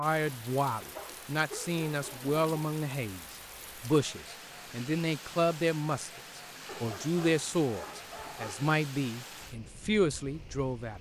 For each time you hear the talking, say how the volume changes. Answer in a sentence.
You can hear the talking from 0.0 to 10.9 s, at a steady volume.